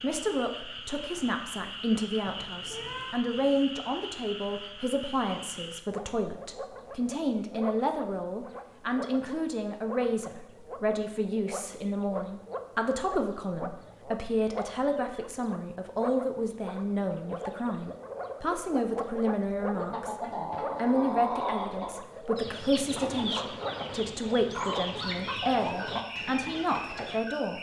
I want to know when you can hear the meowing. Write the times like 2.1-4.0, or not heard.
2.2-3.2.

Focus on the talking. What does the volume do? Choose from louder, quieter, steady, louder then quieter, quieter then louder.
steady.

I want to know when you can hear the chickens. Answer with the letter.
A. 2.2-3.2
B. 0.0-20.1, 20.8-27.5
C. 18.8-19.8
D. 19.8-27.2
D.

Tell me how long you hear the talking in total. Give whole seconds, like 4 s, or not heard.
27 s.